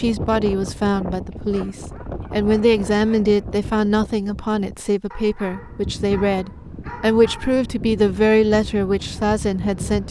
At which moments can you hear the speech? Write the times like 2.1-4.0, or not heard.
0.0-10.0.